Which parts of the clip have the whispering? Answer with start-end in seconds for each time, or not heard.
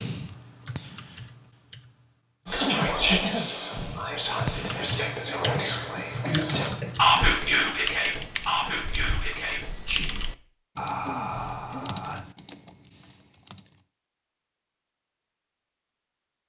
2.5-12.2.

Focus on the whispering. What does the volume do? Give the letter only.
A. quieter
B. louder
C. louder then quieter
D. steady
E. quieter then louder
A.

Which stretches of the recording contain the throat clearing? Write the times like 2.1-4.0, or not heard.
2.6-3.5, 6.0-6.9, 11.0-11.9.